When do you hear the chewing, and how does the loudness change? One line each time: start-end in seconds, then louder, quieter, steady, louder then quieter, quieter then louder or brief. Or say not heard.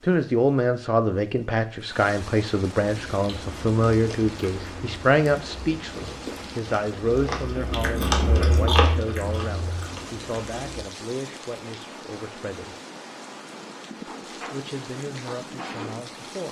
2.9-10.8 louder then quieter.